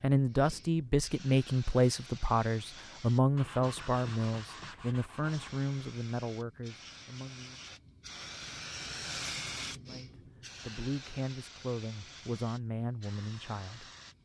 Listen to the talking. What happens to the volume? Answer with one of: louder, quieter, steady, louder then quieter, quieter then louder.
quieter.